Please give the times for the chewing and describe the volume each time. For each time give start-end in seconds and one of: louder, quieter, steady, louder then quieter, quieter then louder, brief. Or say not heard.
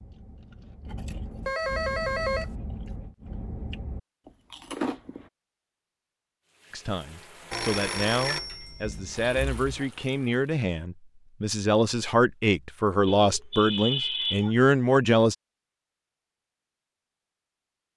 0.0-5.3 louder.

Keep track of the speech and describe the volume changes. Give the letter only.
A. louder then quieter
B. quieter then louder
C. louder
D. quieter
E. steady
C.